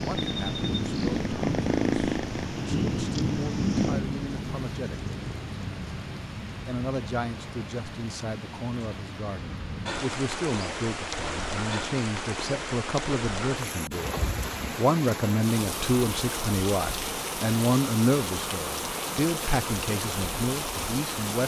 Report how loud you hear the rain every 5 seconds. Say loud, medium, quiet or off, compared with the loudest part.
loud, medium, loud, loud, loud.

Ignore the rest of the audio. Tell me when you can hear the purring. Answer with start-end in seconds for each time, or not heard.
0.0-6.0.